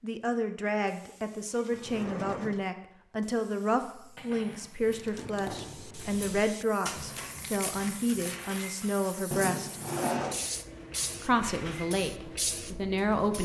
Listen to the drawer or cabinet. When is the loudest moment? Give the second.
10 s.